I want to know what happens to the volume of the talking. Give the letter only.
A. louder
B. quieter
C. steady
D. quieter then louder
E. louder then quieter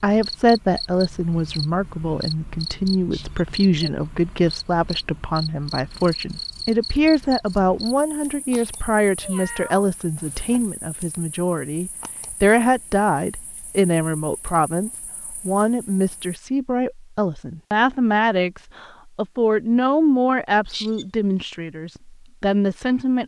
C.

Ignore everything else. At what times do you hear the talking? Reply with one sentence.
The talking can be heard from 0.0 to 23.2 s.